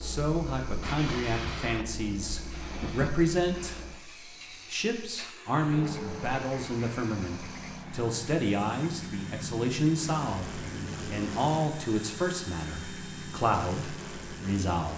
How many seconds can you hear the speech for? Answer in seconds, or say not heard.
15 s.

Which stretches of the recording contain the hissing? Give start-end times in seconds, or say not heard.
0.0-14.9.